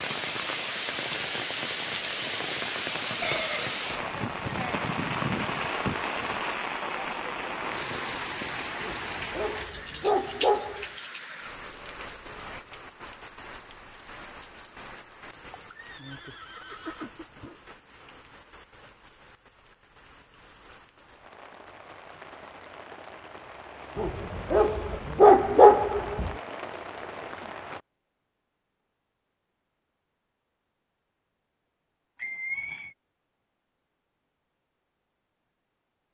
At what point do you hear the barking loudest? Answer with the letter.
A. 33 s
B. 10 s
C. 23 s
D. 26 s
D.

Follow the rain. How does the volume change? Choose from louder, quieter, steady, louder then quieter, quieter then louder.
quieter then louder.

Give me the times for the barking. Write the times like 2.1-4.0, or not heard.
8.8-10.8, 23.9-26.4.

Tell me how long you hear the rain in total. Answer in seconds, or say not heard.
28 s.